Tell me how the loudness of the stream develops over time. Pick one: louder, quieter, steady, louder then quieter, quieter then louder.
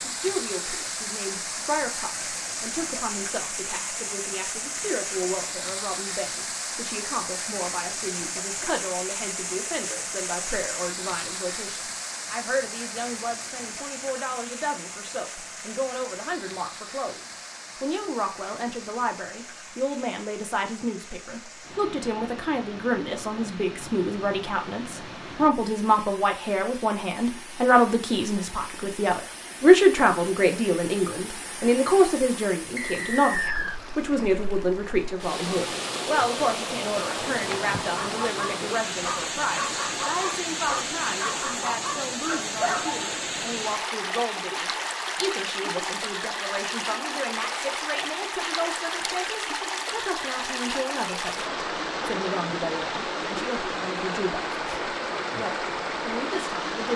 quieter then louder.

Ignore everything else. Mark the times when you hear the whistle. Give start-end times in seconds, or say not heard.
32.8-33.8.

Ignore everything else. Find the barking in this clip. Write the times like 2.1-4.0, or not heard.
37.9-43.2.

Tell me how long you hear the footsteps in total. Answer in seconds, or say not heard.
not heard.